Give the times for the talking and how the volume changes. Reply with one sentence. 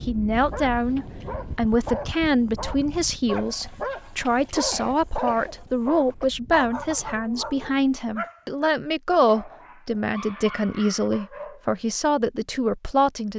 The talking can be heard from 0.1 to 13.3 s, at a steady volume.